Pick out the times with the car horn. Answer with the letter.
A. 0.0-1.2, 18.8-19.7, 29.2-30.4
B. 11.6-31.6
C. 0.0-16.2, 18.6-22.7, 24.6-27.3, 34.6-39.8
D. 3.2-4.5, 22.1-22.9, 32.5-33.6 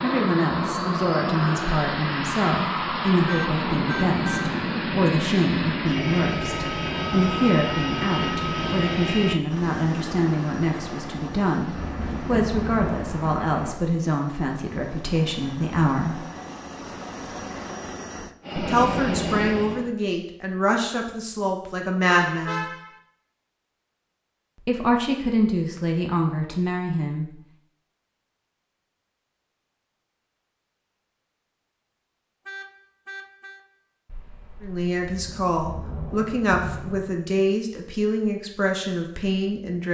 D.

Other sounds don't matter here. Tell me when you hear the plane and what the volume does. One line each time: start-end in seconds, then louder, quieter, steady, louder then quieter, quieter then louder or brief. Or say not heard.
0.0-19.9 quieter then louder.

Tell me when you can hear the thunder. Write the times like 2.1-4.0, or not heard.
11.7-13.8, 34.0-37.1.